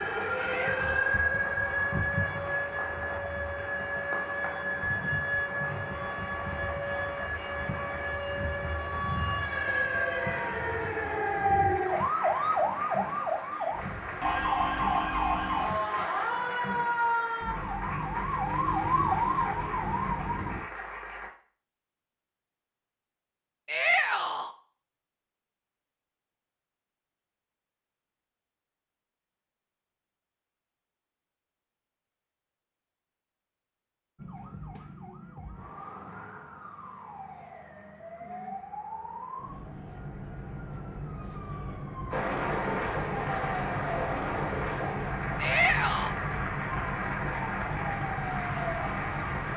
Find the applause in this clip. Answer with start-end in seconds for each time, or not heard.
0.0-21.3, 42.1-49.5.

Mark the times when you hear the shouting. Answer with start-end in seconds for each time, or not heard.
0.3-1.2, 23.6-24.5, 45.4-46.1.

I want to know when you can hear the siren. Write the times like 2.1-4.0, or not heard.
0.0-20.6, 34.1-49.5.